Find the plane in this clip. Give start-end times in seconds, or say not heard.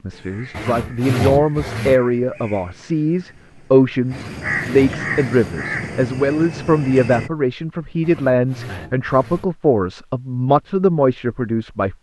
not heard.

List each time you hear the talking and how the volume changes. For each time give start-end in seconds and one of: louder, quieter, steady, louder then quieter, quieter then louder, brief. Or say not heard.
0.0-11.9 steady.